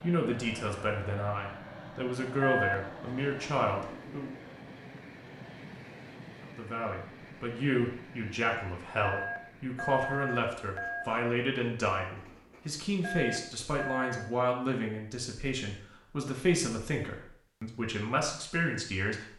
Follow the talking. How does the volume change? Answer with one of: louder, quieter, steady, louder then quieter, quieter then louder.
steady.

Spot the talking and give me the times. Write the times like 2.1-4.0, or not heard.
0.0-4.3, 6.4-19.3.